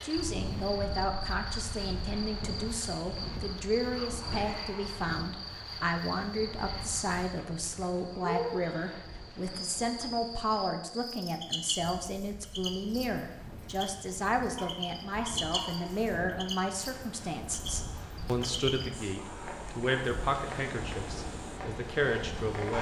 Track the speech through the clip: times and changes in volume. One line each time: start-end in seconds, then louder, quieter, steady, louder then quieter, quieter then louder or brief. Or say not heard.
0.0-22.7 steady.